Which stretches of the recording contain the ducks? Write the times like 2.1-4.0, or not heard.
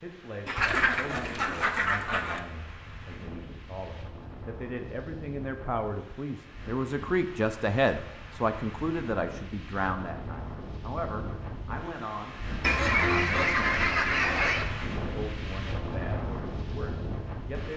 0.5-2.4, 12.6-14.7.